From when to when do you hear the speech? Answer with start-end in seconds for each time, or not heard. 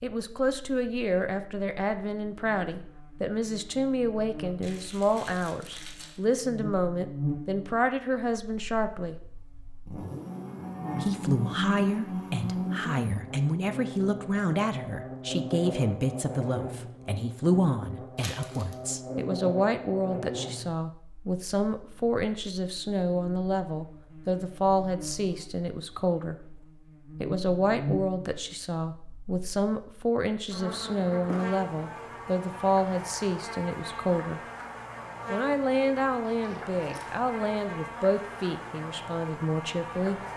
0.0-9.2, 11.0-26.4, 27.2-34.4, 35.2-40.2.